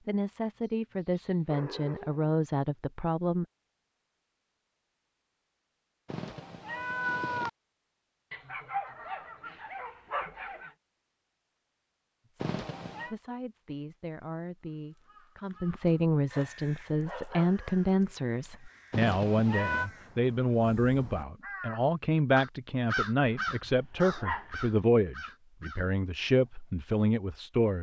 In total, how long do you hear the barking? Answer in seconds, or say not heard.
7 s.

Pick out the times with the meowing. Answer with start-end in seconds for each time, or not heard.
6.0-7.5, 12.4-13.2, 18.9-19.9.